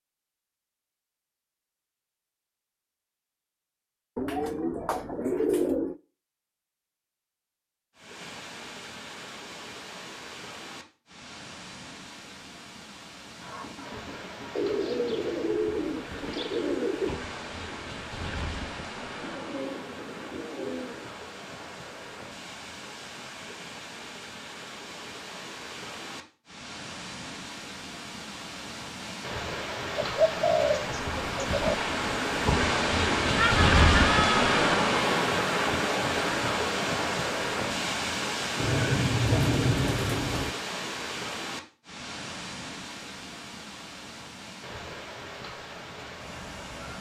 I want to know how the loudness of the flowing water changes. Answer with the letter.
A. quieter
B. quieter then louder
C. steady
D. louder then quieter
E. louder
D.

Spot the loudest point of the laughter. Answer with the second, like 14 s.
34 s.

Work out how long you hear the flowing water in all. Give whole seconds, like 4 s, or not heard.
39 s.